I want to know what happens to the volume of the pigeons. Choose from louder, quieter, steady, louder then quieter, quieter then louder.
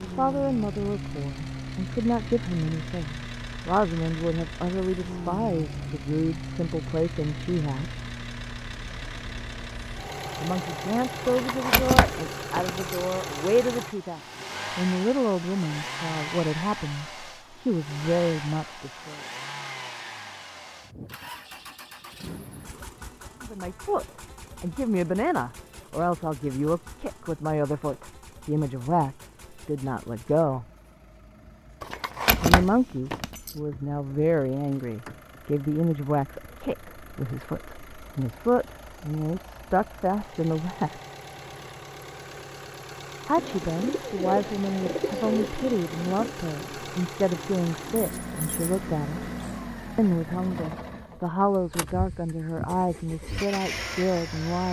quieter.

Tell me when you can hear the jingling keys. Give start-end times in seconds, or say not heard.
11.2-13.0, 31.8-33.5, 48.0-48.8.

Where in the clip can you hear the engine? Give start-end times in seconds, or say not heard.
0.0-54.6.